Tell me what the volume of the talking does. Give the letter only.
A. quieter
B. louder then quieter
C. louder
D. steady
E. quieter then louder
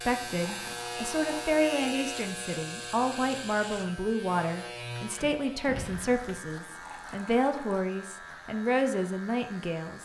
D.